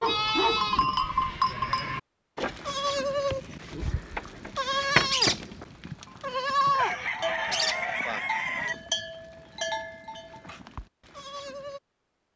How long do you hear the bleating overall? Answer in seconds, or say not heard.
12 s.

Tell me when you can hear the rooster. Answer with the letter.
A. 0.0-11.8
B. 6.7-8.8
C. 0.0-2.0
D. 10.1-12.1
B.